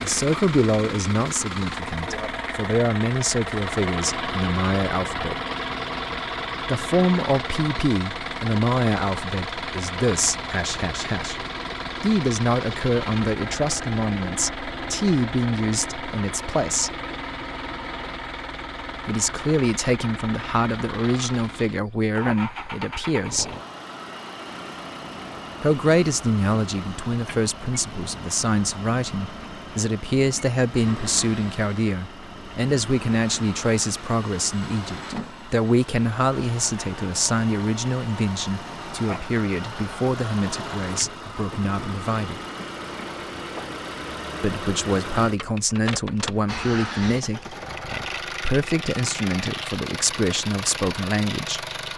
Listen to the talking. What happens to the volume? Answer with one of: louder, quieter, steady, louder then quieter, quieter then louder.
steady.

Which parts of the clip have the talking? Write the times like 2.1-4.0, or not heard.
0.0-5.3, 6.7-11.4, 12.0-16.9, 19.1-23.5, 25.6-42.4, 44.4-51.6.